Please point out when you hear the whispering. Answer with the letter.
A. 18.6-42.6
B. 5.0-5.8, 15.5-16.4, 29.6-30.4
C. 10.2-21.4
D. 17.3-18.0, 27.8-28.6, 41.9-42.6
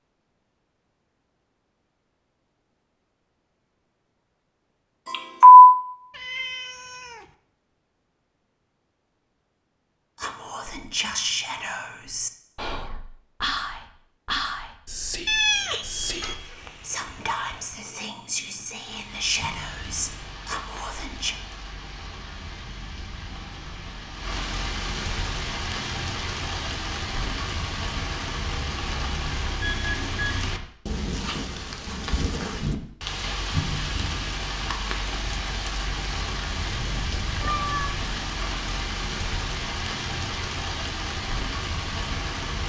C.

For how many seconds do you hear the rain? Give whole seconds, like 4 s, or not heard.
24 s.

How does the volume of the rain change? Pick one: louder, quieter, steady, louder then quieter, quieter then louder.
louder.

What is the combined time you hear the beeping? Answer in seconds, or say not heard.
2 s.